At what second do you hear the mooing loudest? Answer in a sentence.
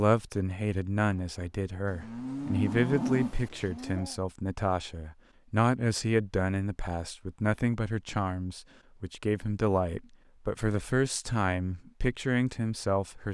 The loudest moment of the mooing is at 3 seconds.